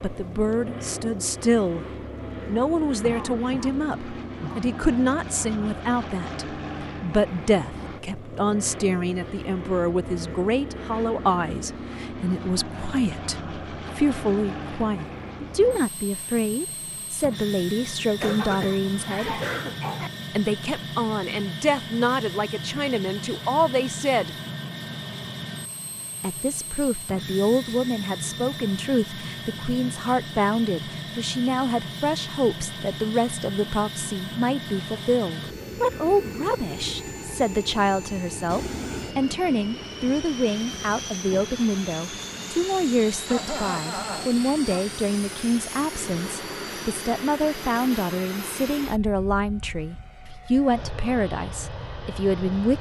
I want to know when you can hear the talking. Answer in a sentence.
You can hear the talking from 0.0 to 1.9 s, from 2.5 to 19.4 s, from 20.4 to 24.4 s and from 26.2 to 52.7 s.